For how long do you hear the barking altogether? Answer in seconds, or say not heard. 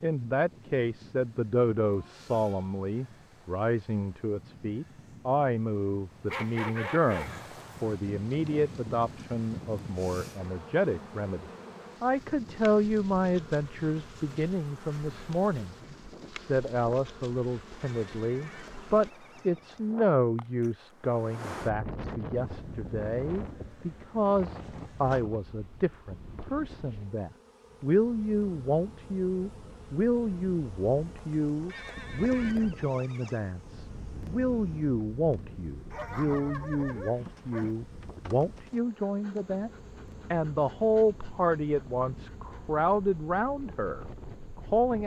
3 s.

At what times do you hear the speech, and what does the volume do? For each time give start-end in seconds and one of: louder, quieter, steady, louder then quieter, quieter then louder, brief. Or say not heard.
0.0-39.7 steady
40.3-45.0 quieter.